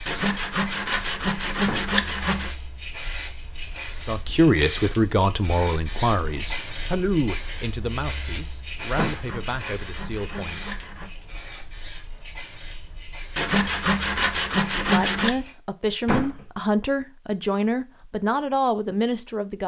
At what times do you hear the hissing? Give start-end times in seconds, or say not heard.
0.0-15.6.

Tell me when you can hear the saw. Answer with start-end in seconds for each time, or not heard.
0.1-2.5, 8.8-11.1, 13.3-15.3.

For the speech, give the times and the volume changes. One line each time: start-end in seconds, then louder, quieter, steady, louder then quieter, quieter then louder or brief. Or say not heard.
4.0-10.7 quieter
14.8-19.6 steady.